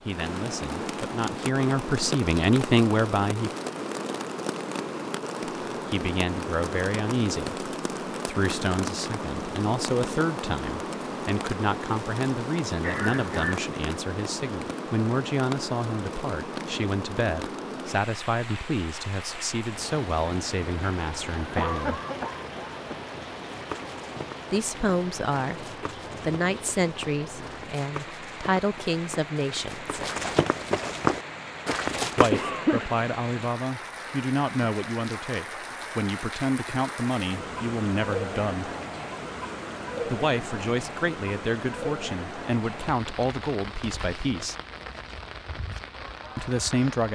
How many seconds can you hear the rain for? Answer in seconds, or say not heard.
47 s.